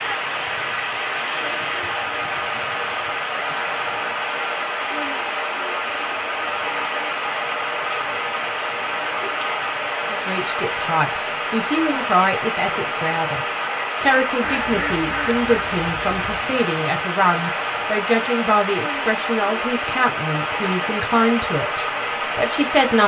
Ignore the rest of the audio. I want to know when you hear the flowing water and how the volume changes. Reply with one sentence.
The flowing water can be heard from 0.0 to 23.0 s, at a steady volume.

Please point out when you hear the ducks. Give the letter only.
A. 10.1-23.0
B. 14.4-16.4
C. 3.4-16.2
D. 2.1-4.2
B.